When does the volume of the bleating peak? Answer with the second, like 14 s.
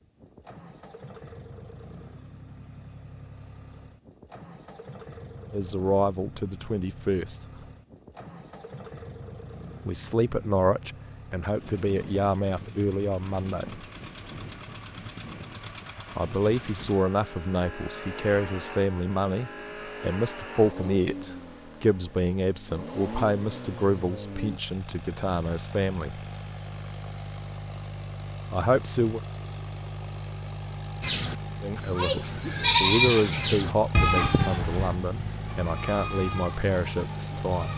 33 s.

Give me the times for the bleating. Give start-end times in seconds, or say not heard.
31.0-37.7.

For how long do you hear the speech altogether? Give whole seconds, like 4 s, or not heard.
23 s.